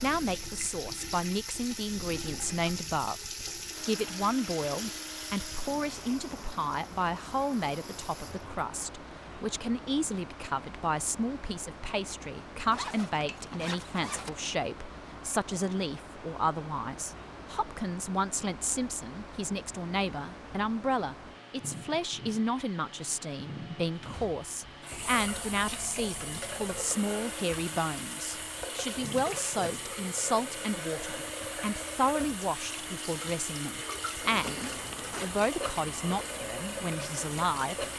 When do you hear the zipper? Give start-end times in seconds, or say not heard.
12.7-14.5, 34.2-35.3.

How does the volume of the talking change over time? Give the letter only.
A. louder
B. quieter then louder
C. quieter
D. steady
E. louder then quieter
D.